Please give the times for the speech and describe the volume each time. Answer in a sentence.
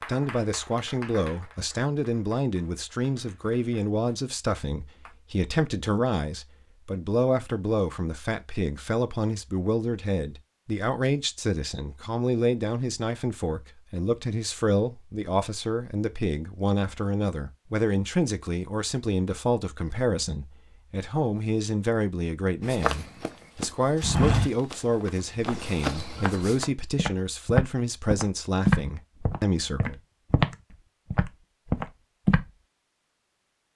The speech can be heard from 0.1 to 29.9 s, at a steady volume.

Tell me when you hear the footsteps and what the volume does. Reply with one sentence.
You can hear the footsteps from 22.6 to 32.5 s, getting quieter then louder.